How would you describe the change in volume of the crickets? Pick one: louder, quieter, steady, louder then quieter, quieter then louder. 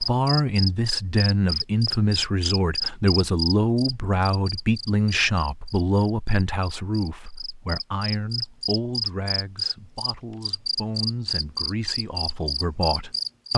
quieter then louder.